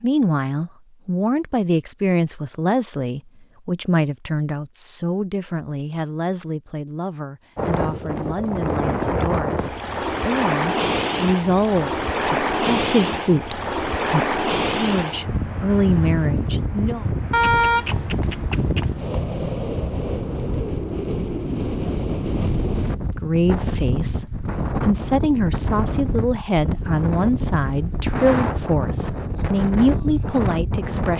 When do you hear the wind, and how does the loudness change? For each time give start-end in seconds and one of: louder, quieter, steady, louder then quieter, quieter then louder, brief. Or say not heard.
7.5-31.1 steady.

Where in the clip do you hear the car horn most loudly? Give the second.
18 s.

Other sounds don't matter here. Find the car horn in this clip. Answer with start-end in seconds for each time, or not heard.
17.3-19.2.